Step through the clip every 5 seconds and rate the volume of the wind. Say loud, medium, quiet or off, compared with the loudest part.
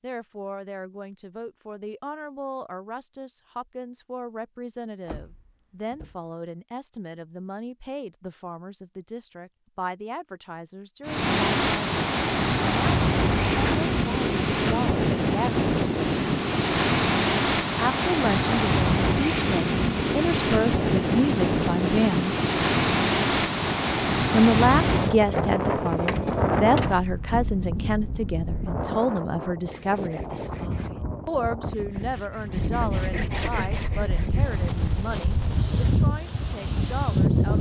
off, off, loud, loud, loud, medium, medium, loud.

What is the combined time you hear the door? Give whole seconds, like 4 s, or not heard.
3 s.